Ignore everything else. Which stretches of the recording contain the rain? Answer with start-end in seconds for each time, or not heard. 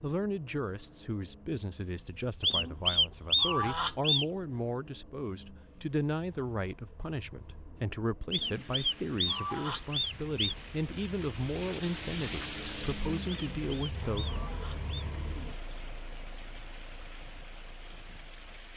8.3-18.7.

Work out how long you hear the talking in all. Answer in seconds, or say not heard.
14 s.